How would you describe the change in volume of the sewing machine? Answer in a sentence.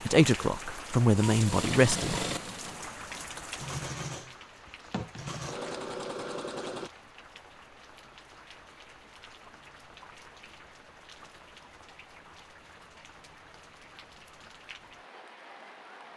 The loudness of the sewing machine goes down, then up.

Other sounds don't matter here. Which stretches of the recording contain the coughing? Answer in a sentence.
You can't hear the coughing here.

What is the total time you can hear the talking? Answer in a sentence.
You can hear the talking for 2 seconds altogether.